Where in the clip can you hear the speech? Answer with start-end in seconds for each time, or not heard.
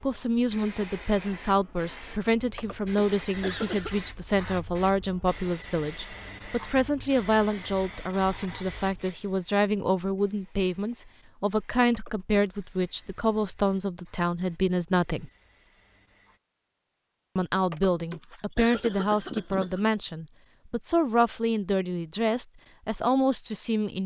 0.0-15.3, 17.4-24.0.